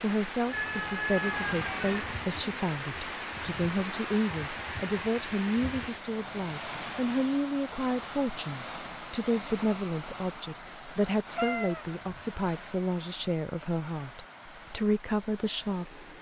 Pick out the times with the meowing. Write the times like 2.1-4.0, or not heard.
0.5-2.1, 11.3-11.8.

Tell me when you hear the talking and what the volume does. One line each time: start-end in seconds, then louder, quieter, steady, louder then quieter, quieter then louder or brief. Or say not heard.
0.0-16.0 steady.